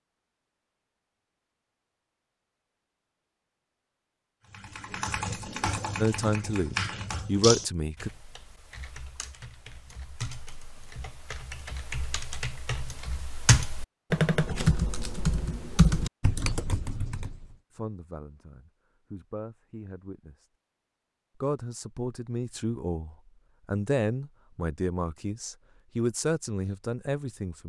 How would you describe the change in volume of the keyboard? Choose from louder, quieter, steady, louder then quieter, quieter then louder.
quieter then louder.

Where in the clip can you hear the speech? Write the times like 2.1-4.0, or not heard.
6.0-8.1, 17.7-20.5, 21.4-27.6.